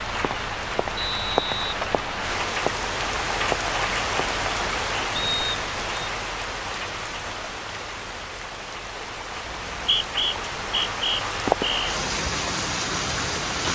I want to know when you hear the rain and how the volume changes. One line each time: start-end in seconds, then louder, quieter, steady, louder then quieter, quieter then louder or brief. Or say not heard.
0.0-13.6 quieter then louder.